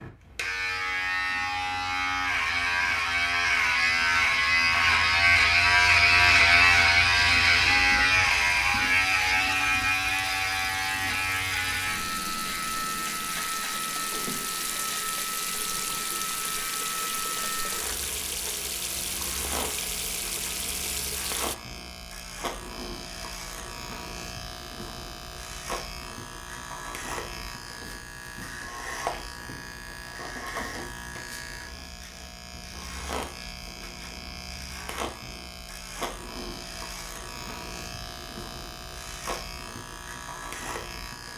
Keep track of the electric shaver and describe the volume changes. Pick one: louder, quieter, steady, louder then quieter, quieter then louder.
quieter.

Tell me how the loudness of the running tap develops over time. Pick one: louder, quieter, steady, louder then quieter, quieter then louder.
louder.